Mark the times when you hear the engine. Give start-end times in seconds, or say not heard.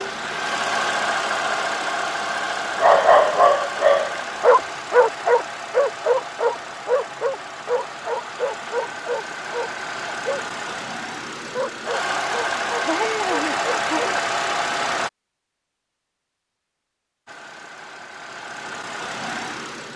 0.0-15.1, 17.2-19.9.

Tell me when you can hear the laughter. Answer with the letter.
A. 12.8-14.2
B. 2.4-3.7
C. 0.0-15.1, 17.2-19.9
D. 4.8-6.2
A.